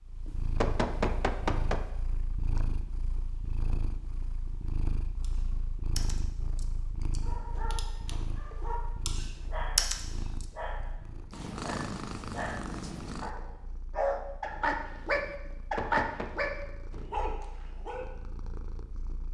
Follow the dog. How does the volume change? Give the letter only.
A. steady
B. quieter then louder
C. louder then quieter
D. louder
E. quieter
D.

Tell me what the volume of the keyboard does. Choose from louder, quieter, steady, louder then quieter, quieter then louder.
quieter then louder.